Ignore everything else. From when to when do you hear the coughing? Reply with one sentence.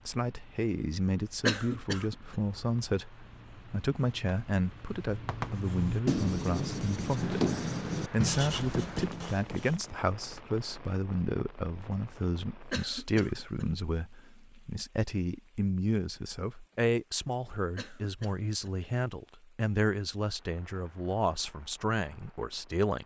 You can hear the coughing from 1.4 to 2.4 s, from 12.7 to 13.7 s and from 17.8 to 18.8 s.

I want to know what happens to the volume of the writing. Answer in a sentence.
The loudness of the writing goes up.